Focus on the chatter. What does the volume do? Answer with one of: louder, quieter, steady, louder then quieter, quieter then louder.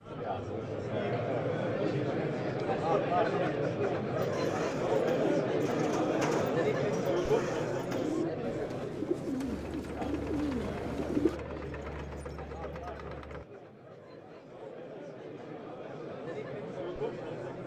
quieter.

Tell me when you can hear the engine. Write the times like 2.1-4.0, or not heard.
9.5-13.4.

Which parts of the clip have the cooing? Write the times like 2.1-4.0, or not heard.
4.2-11.4.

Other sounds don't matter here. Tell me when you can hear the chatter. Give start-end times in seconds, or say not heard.
0.0-17.6.